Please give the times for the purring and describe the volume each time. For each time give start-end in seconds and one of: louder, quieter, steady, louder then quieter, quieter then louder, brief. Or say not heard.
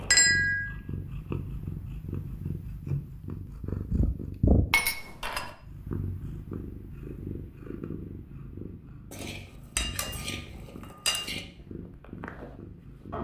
0.0-13.1 louder then quieter.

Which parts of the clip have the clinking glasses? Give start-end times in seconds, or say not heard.
0.1-0.7, 4.7-5.5, 9.1-11.4.